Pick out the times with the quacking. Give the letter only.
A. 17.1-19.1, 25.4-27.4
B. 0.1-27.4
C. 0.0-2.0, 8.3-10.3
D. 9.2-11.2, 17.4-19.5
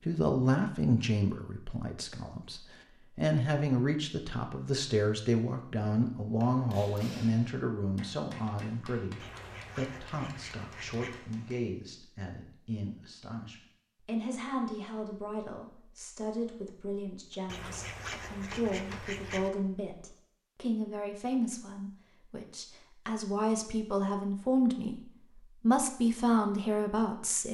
D.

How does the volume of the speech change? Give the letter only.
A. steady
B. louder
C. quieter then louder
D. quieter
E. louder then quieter
C.